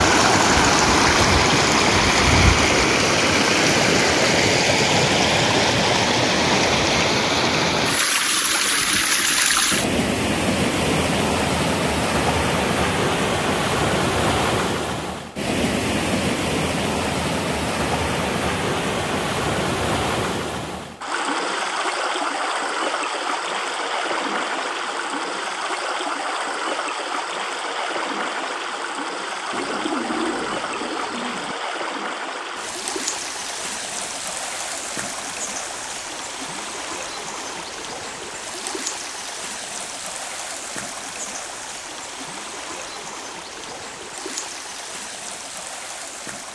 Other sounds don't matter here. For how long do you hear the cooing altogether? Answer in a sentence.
You can hear the cooing for 2 seconds altogether.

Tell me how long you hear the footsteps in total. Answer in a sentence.
The footsteps can't be heard in this clip.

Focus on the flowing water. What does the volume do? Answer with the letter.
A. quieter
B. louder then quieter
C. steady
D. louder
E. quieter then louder
A.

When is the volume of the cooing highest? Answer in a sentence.
The volume of the cooing peaks at 30 seconds.